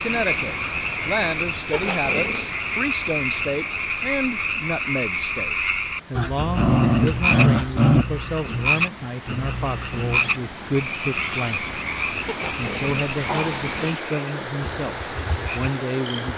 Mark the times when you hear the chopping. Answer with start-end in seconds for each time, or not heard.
not heard.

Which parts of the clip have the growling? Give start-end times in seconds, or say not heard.
1.7-2.5, 6.2-8.1, 12.2-13.8.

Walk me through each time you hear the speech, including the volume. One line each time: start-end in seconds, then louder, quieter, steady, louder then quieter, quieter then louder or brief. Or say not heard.
0.0-16.3 steady.